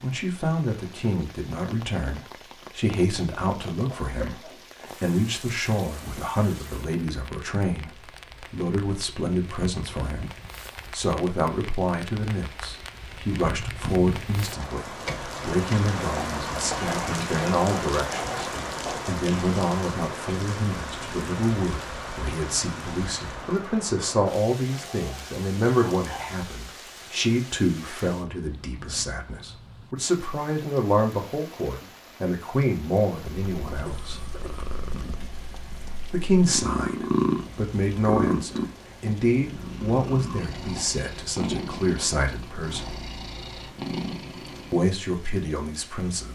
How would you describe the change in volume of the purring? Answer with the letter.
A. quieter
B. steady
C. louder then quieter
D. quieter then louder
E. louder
C.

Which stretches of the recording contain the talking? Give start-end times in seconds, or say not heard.
0.0-10.3, 10.9-34.2, 36.1-43.0, 44.7-46.3.